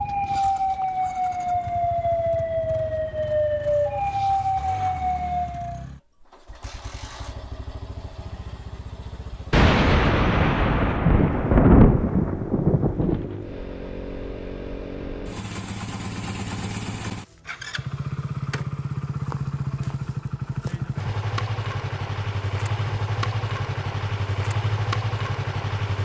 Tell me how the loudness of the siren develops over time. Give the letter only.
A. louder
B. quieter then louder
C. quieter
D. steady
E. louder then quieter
D.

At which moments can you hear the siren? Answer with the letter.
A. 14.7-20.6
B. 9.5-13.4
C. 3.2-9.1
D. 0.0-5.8
D.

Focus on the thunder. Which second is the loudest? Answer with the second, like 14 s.
12 s.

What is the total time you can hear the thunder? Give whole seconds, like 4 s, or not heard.
4 s.